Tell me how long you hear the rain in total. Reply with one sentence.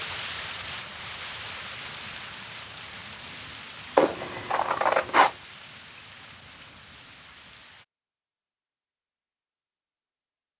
The rain can be heard for 8 seconds in total.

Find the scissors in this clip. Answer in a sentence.
You can hear the scissors from 4.0 to 5.3 s.